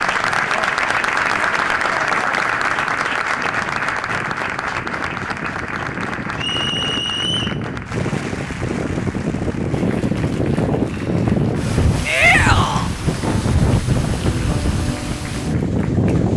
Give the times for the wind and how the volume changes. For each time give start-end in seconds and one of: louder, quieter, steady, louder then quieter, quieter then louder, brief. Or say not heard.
0.1-16.3 louder.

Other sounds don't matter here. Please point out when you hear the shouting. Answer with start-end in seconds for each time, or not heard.
12.1-12.9.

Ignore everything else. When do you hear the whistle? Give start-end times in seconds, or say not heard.
6.3-7.6.